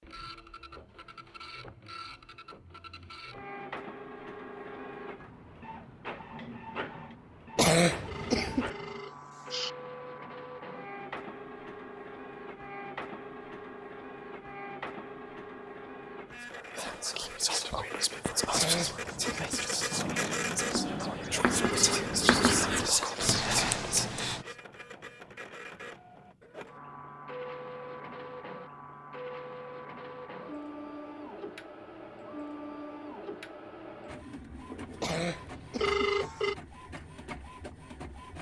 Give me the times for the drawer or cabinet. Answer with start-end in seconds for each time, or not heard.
not heard.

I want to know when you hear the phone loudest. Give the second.
36 s.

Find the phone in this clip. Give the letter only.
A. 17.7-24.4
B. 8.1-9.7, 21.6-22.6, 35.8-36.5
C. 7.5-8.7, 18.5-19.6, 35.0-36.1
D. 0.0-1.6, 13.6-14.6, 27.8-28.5
B.